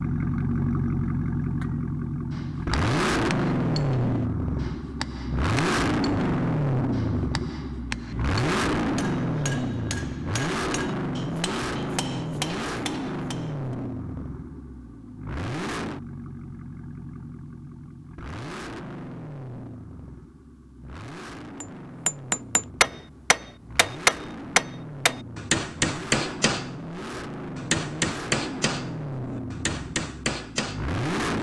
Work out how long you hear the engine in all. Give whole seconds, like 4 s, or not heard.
31 s.